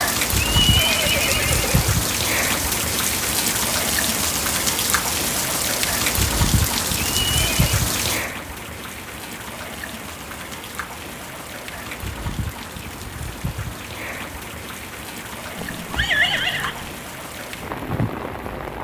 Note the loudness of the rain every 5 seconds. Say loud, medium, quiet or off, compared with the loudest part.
loud, loud, medium, medium.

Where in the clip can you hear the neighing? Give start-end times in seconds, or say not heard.
0.5-2.0, 7.2-7.8, 15.6-16.9.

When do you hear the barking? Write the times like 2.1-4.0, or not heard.
not heard.